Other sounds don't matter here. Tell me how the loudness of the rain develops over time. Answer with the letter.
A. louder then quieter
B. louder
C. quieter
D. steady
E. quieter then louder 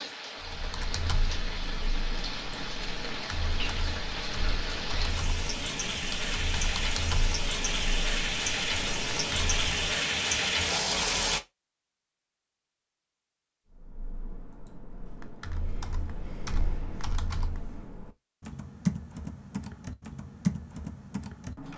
B.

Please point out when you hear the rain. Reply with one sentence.
You can hear the rain from 0.0 to 11.4 s.